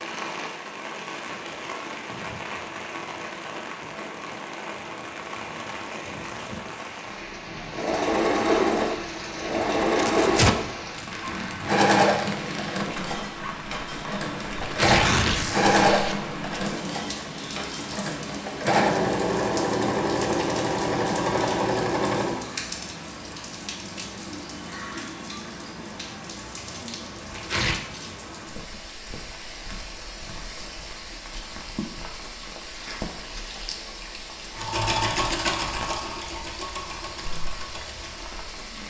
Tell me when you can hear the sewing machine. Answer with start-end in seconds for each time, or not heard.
7.7-22.4, 34.5-38.8.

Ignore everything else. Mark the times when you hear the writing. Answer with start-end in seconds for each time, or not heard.
not heard.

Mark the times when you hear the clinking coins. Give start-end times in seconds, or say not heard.
not heard.